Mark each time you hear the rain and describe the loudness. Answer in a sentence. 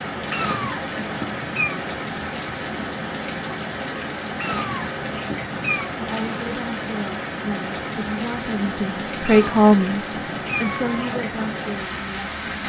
You can hear the rain from 0.0 to 12.6 s, at a steady volume.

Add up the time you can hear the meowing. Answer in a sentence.
The meowing can be heard for 5 seconds in total.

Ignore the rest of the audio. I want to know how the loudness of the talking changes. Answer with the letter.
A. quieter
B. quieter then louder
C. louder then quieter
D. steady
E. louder
C.